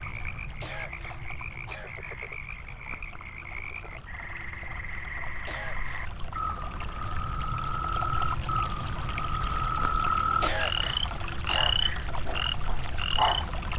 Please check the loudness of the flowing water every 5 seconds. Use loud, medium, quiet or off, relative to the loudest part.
medium, loud, loud.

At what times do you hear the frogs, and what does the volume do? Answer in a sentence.
The frogs can be heard from 0.0 to 13.4 s, getting louder.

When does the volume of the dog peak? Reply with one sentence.
The volume of the dog peaks at 13 seconds.